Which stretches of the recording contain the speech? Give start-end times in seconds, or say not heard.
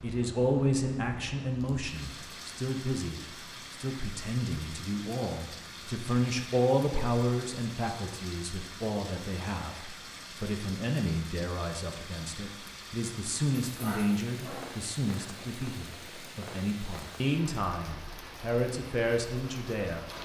0.0-20.1.